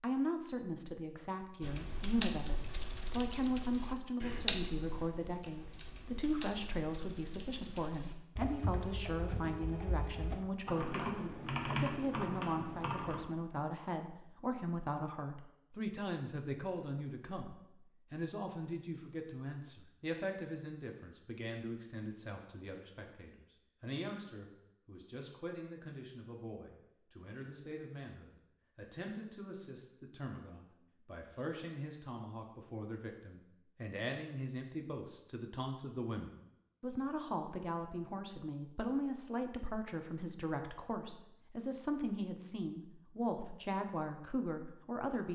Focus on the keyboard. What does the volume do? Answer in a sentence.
The volume of the keyboard goes down, then up.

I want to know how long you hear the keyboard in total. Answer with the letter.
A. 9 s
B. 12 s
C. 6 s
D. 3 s
B.